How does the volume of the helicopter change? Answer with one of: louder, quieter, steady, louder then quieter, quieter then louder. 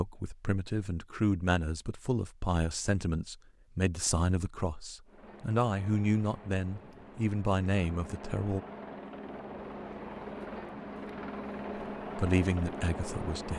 louder.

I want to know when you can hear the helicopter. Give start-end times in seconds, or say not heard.
5.0-13.5.